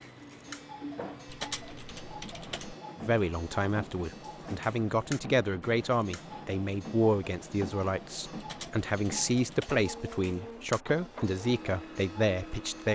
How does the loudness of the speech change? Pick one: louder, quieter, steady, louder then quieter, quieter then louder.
steady.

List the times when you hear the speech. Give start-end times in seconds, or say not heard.
3.0-12.8.